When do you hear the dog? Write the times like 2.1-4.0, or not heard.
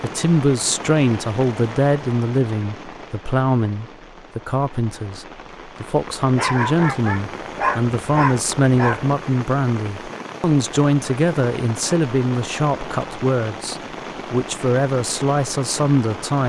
6.3-9.1.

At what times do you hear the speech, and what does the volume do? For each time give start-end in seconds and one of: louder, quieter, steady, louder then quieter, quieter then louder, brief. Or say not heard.
0.0-16.4 steady.